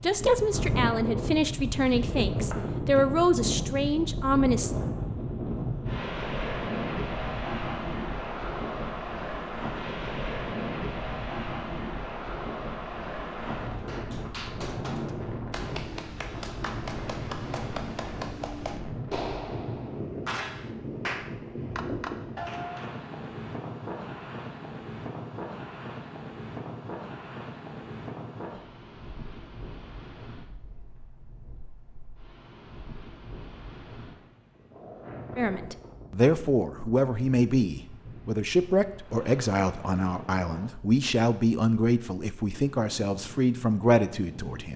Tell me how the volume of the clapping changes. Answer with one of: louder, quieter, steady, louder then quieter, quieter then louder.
louder.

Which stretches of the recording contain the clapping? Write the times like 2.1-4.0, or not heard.
13.7-22.9.